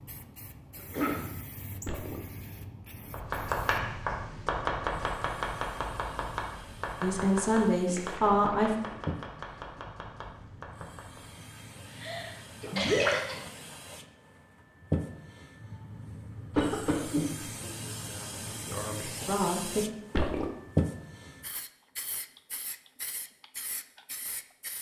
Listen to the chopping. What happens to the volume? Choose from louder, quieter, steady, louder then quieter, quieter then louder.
quieter.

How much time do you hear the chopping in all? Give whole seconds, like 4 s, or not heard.
8 s.